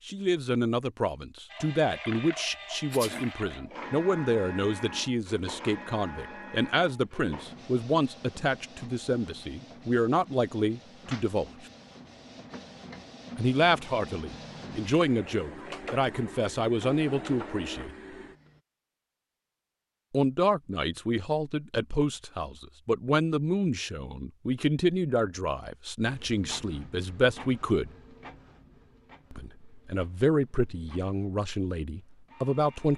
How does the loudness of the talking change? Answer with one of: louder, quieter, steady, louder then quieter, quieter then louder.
steady.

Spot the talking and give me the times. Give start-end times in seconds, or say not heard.
0.1-11.5, 13.3-17.9, 20.1-27.9, 29.3-32.9.